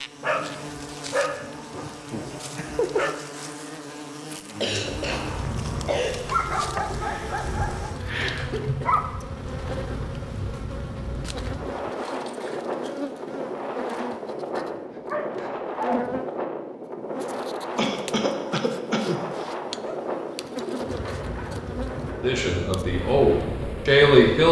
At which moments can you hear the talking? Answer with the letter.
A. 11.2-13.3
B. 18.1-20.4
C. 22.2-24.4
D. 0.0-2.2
C.